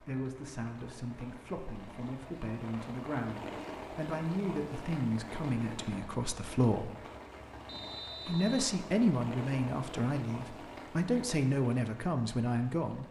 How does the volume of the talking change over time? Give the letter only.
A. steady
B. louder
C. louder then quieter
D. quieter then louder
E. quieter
B.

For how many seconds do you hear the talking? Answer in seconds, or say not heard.
12 s.